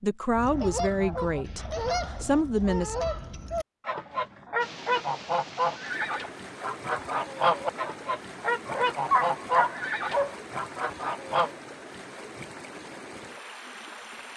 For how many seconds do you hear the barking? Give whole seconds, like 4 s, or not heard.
2 s.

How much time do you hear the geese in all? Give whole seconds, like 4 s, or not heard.
11 s.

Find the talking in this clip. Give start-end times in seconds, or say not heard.
0.0-3.0.